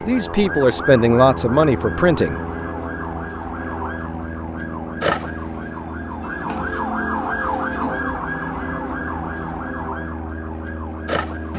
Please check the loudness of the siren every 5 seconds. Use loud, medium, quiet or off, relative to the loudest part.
medium, loud, medium.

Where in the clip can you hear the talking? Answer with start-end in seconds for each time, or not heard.
0.1-2.4.